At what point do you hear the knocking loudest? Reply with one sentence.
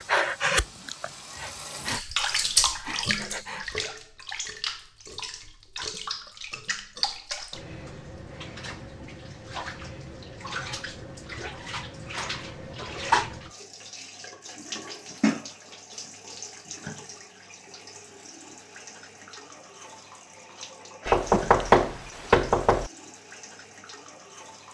The volume of the knocking peaks at 22 seconds.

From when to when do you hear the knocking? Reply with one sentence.
You can hear the knocking from 21.1 to 22.9 s.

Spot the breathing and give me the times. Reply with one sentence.
The breathing can be heard from 0.0 to 3.9 s.